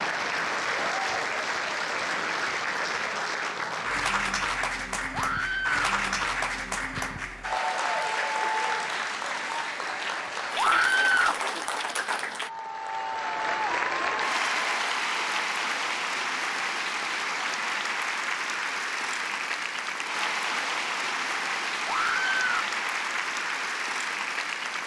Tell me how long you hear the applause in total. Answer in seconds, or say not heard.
25 s.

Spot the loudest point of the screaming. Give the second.
11 s.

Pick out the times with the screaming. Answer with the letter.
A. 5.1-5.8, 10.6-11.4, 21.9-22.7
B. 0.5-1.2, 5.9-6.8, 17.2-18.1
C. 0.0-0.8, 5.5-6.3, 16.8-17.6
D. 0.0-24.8
A.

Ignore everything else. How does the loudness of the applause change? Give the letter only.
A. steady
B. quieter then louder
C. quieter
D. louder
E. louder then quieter
A.